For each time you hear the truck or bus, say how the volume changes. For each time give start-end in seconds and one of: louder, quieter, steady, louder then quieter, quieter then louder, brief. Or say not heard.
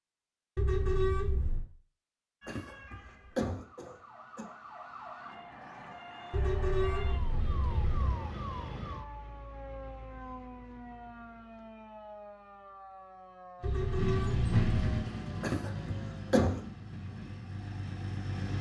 13.6-18.5 quieter.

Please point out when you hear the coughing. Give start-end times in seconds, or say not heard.
2.5-4.5, 15.4-16.6.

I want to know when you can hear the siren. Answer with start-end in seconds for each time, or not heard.
2.4-16.4.